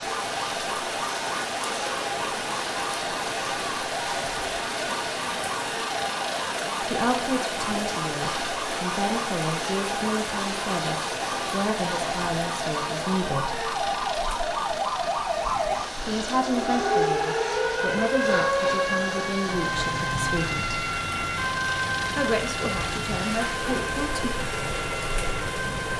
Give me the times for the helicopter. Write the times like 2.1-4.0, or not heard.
0.0-25.9.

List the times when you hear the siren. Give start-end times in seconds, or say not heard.
0.0-25.9.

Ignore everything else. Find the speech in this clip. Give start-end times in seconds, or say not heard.
6.8-13.7, 15.9-20.8, 22.1-24.3.